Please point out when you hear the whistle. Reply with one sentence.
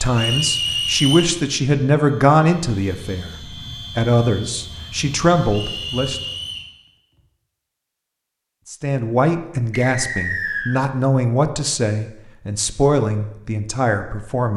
The whistle can be heard from 0.1 to 1.3 s, from 5.5 to 6.7 s and from 9.7 to 10.8 s.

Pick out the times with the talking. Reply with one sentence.
The talking can be heard from 0.0 to 3.4 s, from 4.0 to 6.2 s and from 8.7 to 14.5 s.